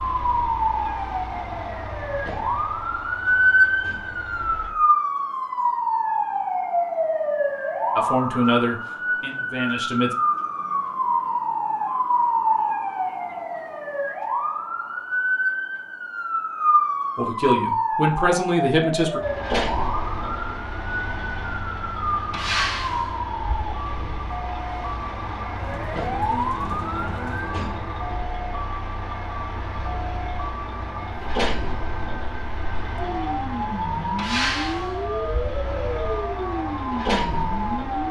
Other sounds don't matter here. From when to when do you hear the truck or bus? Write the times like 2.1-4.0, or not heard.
0.0-4.8, 19.2-38.0.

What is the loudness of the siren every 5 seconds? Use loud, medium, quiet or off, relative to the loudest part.
loud, loud, loud, loud, medium, medium, medium, medium.